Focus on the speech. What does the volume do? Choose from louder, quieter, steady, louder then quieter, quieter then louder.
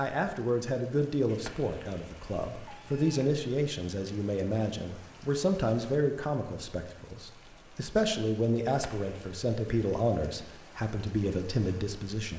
steady.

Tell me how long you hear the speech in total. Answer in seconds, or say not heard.
12 s.